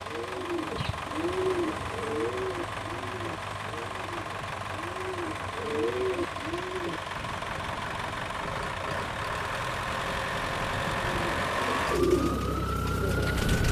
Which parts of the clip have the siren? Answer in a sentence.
The siren can be heard from 7.1 to 13.6 s.